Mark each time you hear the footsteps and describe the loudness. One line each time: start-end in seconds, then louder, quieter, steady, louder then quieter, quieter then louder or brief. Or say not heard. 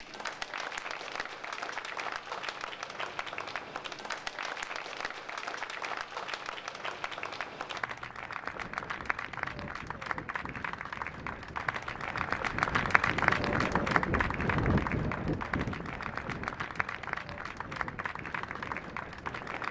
not heard.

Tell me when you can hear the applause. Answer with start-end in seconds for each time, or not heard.
0.0-19.6.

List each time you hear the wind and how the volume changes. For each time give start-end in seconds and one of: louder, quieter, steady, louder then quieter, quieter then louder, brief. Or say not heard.
8.5-19.6 louder then quieter.